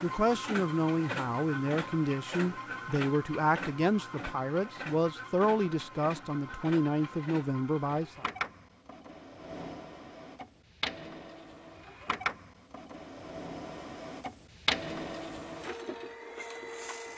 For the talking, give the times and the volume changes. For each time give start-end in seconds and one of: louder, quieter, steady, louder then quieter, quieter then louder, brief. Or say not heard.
0.0-8.2 steady.